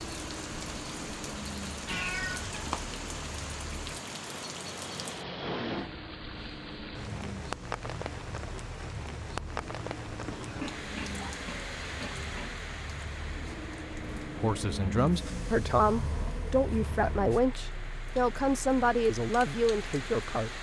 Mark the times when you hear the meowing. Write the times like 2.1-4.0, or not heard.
1.9-2.9.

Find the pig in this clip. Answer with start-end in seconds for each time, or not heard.
10.2-12.6.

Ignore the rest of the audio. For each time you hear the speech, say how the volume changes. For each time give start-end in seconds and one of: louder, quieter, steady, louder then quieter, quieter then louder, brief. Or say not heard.
14.3-20.5 steady.